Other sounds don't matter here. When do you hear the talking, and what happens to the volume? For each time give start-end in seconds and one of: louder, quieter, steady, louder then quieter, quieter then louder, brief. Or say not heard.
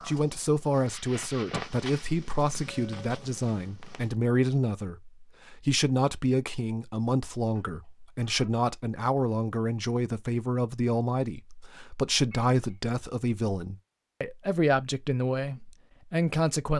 0.1-16.7 steady.